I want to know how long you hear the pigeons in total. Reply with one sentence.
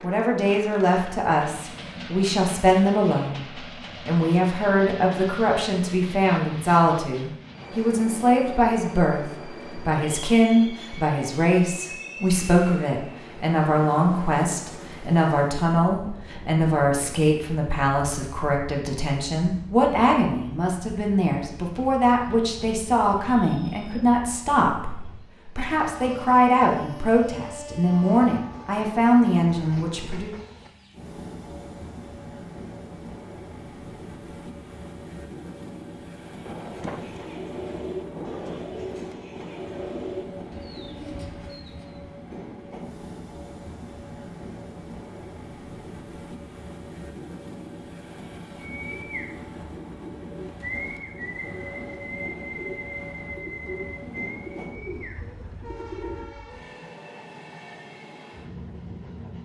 You can hear the pigeons for 13 seconds altogether.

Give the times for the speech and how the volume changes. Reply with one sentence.
The speech can be heard from 0.0 to 30.4 s, at a steady volume.